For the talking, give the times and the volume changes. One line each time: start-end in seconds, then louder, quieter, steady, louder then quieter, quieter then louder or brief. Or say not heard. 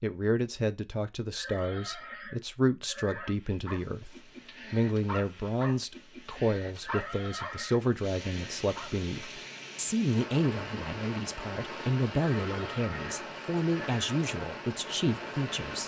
0.0-15.8 steady.